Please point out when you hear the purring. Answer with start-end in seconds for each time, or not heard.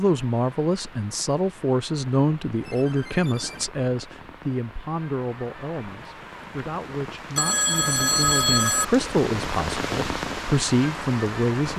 not heard.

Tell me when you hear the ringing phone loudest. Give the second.
8 s.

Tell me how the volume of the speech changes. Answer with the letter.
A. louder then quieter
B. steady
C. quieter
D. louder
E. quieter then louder
E.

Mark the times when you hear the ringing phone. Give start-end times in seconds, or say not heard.
2.6-3.7, 7.3-8.8.